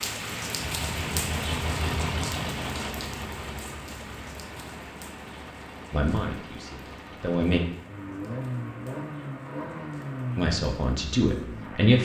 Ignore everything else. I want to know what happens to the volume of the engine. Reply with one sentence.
The loudness of the engine goes down, then up.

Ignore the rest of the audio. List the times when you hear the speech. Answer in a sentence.
The speech can be heard from 5.9 to 7.6 s and from 10.3 to 12.0 s.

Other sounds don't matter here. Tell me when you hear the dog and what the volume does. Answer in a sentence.
The dog can't be heard in this clip.